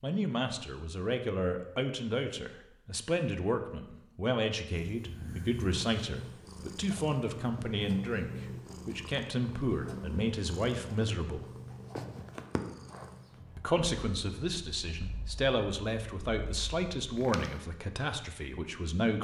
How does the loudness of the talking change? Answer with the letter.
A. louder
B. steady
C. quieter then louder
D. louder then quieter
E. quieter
B.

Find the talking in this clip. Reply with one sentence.
You can hear the talking from 0.0 to 11.4 s and from 13.6 to 19.1 s.